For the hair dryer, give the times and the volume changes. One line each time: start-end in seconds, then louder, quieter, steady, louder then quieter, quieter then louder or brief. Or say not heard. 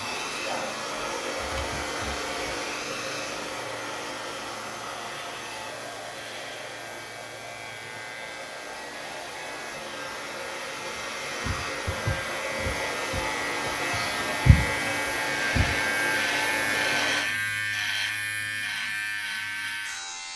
0.0-17.2 quieter then louder.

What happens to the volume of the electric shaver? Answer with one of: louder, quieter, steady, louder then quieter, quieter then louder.
louder.